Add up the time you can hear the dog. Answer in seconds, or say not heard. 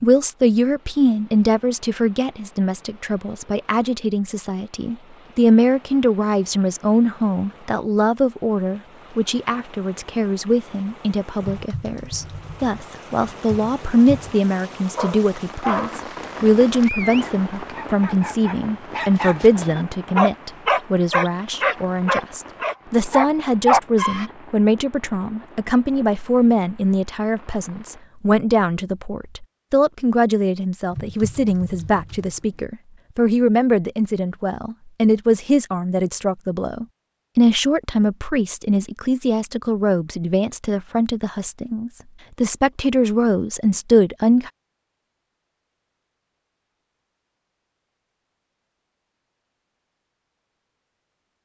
9 s.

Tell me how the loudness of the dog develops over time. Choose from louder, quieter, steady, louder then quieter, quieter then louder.
quieter then louder.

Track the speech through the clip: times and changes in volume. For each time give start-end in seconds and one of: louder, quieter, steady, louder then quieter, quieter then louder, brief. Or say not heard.
0.0-44.5 steady.